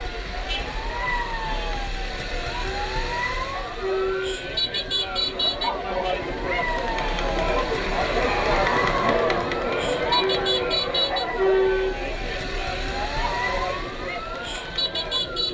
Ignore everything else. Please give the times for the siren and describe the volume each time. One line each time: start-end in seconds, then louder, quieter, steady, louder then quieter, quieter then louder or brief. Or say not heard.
0.0-15.4 steady.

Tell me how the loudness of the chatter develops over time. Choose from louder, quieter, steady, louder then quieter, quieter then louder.
louder then quieter.